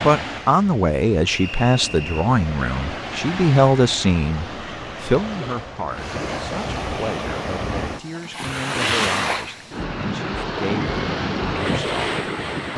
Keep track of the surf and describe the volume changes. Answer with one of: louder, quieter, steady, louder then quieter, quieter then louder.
louder.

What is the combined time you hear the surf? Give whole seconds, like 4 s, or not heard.
13 s.